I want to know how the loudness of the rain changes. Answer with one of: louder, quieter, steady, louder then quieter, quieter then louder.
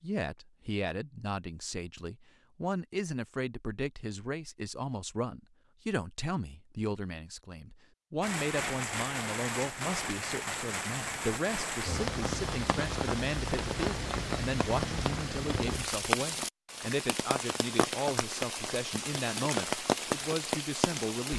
steady.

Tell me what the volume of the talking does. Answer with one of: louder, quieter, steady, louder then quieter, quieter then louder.
steady.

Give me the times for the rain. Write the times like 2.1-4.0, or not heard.
8.2-21.3.